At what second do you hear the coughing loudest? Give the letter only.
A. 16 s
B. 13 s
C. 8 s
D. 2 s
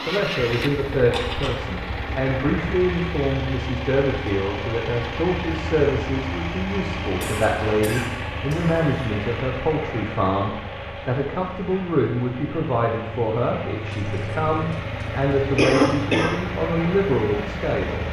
A.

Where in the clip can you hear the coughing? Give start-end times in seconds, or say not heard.
0.9-1.6, 7.2-9.1, 13.9-16.4.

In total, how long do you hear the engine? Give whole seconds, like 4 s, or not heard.
18 s.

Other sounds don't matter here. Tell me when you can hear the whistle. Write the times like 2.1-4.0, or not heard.
not heard.